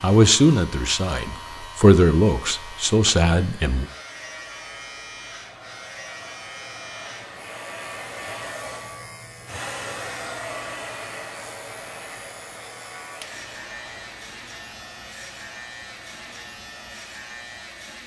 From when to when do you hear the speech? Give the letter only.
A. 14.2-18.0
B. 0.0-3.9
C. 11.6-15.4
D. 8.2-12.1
B.